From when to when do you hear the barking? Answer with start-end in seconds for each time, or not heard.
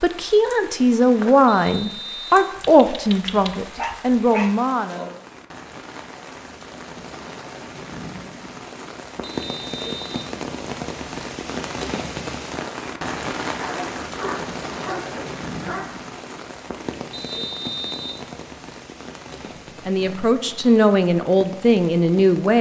2.5-4.5, 13.6-15.9.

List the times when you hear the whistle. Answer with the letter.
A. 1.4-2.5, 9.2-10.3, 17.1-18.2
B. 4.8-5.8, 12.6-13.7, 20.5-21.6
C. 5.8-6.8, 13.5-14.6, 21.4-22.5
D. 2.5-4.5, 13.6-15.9
A.